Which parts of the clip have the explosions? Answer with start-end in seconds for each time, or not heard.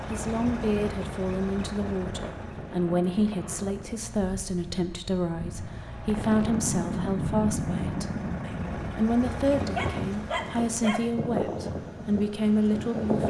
6.0-9.0.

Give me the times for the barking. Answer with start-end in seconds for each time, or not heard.
9.7-11.1.